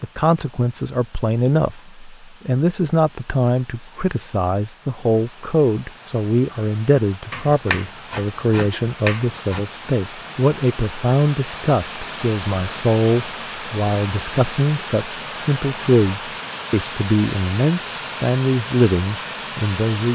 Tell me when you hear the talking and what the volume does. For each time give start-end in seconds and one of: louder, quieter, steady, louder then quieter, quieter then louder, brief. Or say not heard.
0.0-20.0 steady.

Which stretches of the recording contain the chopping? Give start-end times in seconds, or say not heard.
7.3-9.6.